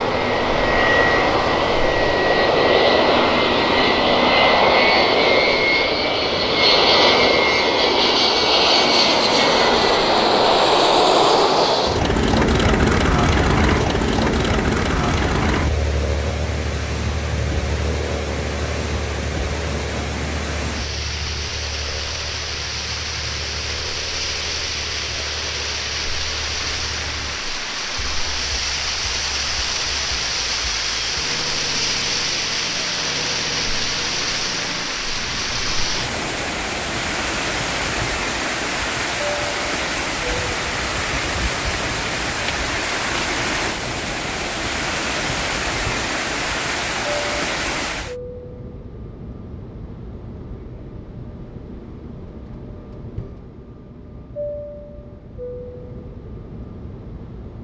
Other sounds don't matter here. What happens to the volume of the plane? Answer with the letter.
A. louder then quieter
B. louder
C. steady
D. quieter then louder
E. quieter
E.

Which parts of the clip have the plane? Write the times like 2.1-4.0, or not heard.
0.0-57.5.